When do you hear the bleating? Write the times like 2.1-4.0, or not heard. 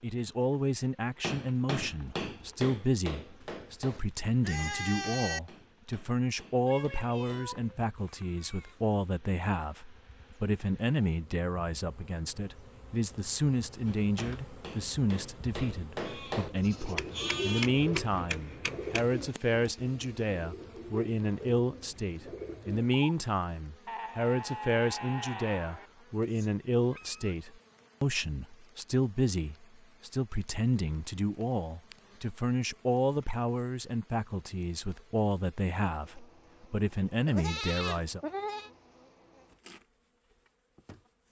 3.4-5.4, 16.1-17.7, 23.9-25.9, 37.2-38.7.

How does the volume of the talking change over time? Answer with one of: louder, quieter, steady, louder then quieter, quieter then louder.
steady.